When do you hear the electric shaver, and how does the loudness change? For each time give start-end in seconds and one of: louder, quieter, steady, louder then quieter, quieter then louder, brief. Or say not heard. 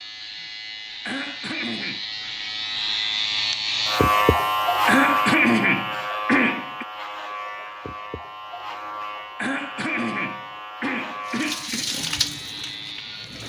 0.0-13.4 louder then quieter.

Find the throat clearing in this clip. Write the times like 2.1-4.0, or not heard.
1.1-2.0, 4.8-6.8, 9.3-11.8.